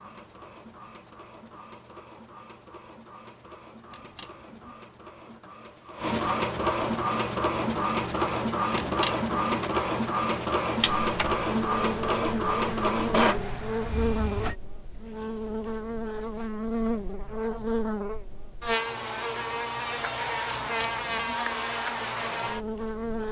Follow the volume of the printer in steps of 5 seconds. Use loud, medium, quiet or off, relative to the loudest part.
quiet, loud, loud, off, off.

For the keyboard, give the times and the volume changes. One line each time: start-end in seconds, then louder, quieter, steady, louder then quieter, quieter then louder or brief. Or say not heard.
not heard.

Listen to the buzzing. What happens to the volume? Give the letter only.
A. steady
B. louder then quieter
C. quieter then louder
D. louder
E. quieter
A.